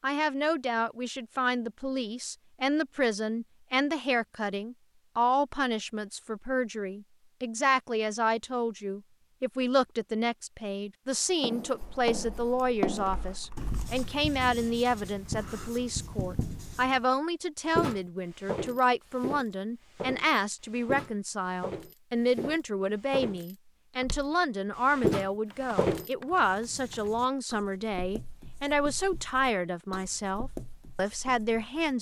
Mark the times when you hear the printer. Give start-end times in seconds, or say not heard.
not heard.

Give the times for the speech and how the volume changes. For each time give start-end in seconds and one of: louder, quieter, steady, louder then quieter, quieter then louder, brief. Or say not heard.
0.0-31.9 steady.